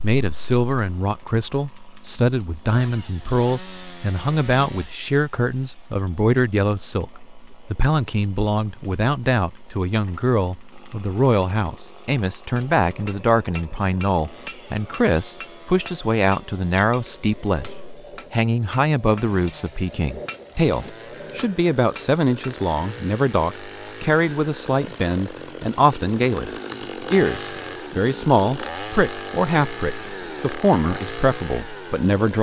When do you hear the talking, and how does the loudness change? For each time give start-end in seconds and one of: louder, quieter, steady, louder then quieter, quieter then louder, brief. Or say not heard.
0.0-32.3 steady.